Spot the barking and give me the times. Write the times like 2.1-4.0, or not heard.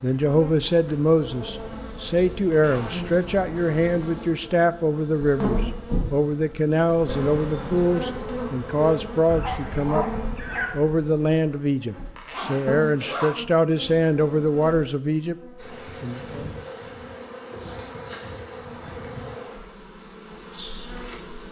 9.2-10.8.